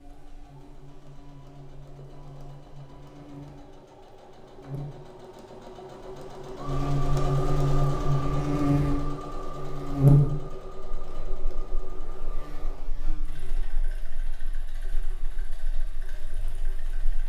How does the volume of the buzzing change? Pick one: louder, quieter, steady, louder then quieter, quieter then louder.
louder then quieter.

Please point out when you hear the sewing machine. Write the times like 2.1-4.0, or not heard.
0.0-17.2.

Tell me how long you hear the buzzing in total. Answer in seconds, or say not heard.
17 s.